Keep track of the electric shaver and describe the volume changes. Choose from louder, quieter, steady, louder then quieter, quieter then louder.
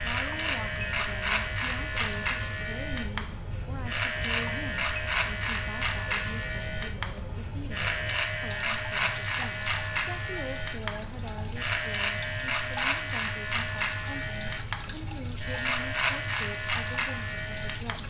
steady.